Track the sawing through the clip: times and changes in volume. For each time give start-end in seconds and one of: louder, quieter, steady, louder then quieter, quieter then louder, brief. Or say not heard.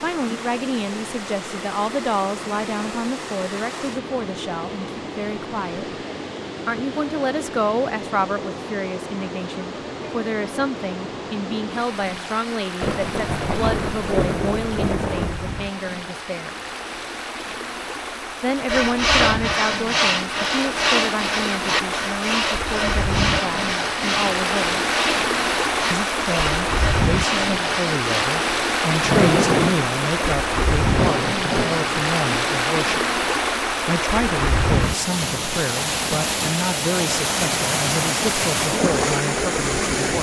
18.6-28.3 quieter.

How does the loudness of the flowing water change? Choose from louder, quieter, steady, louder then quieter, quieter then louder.
louder.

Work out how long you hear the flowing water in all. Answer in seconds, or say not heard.
40 s.